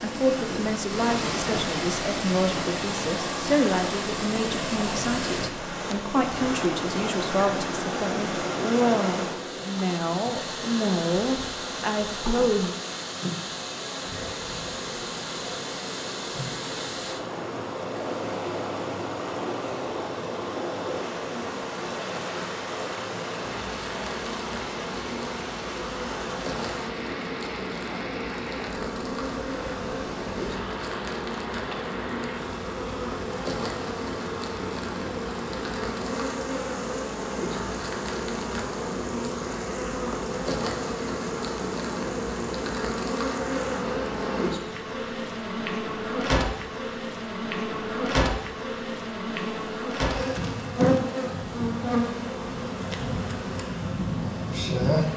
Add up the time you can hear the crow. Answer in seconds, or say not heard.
not heard.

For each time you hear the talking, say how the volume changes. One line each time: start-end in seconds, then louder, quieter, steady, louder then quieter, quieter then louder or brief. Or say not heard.
0.0-12.8 steady.